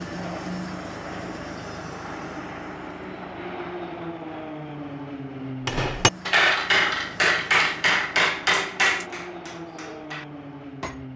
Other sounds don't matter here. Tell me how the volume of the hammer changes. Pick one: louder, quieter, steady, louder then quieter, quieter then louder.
quieter.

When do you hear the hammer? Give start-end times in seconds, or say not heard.
5.7-11.1.